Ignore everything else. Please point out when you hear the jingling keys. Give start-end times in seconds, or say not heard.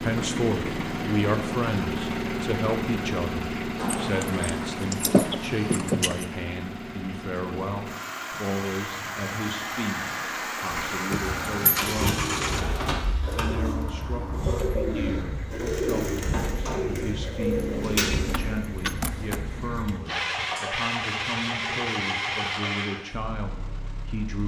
3.8-6.2, 11.1-11.9, 17.4-19.4.